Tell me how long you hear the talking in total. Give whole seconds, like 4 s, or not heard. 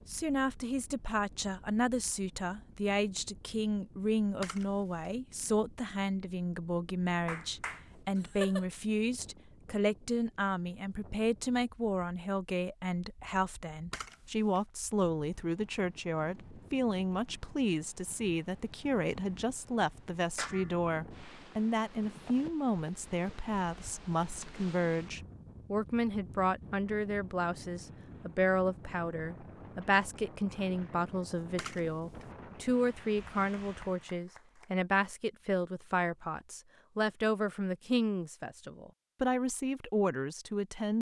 41 s.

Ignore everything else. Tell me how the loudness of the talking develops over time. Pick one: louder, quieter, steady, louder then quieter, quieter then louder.
steady.